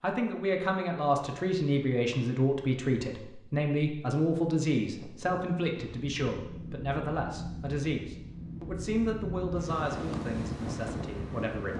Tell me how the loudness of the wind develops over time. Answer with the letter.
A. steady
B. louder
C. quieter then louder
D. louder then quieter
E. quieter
B.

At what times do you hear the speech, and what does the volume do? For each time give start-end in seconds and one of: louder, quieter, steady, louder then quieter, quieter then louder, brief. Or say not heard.
0.0-11.7 quieter.